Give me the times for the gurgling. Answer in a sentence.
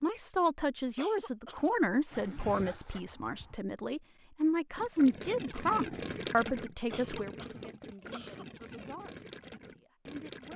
You can hear the gurgling from 4.8 to 10.5 s.